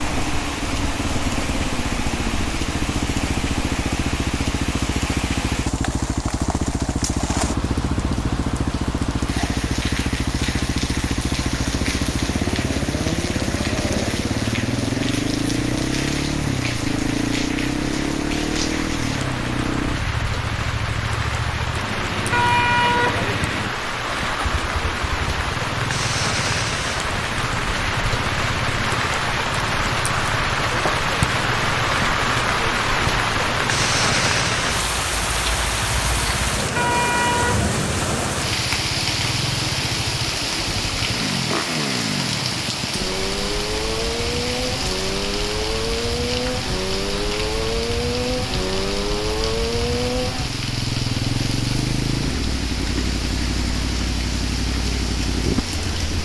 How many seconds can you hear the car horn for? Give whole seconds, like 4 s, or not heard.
2 s.